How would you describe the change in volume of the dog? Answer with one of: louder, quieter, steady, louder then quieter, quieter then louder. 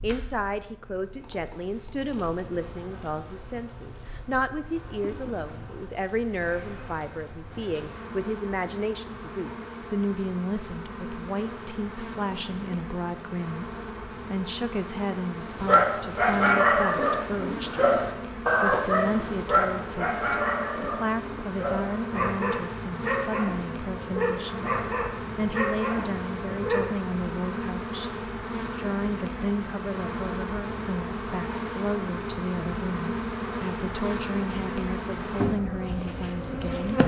quieter.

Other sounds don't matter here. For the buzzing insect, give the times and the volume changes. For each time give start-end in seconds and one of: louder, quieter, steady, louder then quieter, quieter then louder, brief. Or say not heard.
0.0-37.0 louder.